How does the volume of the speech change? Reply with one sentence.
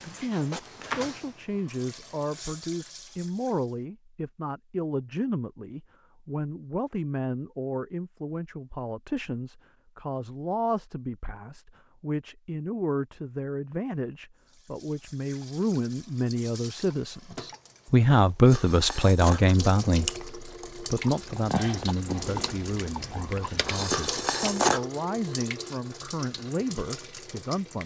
The volume of the speech goes up, then down.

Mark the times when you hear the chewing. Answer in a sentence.
The chewing can be heard from 18.4 to 24.8 s.